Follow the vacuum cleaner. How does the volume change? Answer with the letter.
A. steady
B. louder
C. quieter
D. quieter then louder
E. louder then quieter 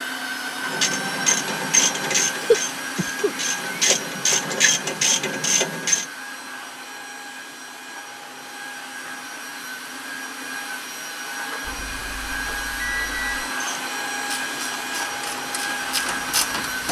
D.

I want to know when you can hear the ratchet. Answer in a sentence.
The ratchet can be heard from 0.6 to 6.0 s and from 13.5 to 16.8 s.